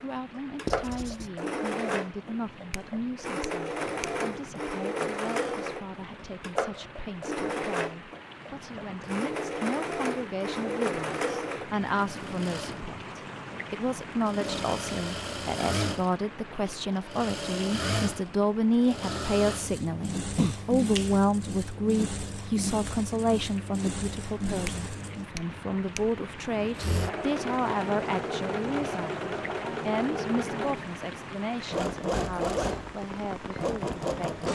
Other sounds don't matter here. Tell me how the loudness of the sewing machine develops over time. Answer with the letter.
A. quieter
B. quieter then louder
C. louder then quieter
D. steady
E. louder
D.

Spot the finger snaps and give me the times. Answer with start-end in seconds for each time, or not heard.
2.7-4.1, 20.4-21.1, 24.6-26.1.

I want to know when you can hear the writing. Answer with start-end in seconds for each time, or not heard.
0.7-1.3.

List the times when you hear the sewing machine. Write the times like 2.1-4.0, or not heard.
0.0-34.5.